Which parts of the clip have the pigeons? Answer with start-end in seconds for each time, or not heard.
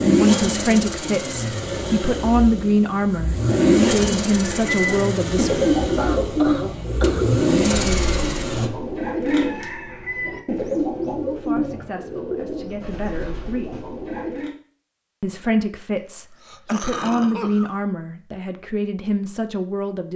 4.3-14.6.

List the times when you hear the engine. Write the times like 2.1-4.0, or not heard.
0.0-8.7.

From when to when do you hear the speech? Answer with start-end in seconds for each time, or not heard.
0.0-5.5, 11.2-13.8, 15.2-20.1.